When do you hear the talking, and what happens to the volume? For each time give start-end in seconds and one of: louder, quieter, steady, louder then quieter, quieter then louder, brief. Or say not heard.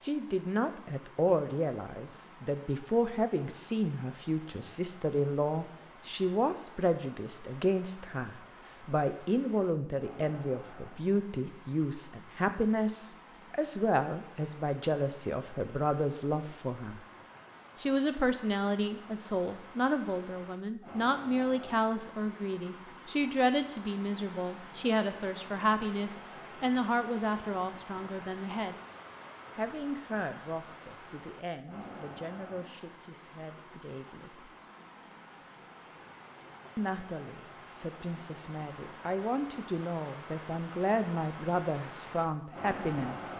0.0-17.0 steady
17.8-28.8 steady
29.6-34.5 quieter
36.8-43.3 louder.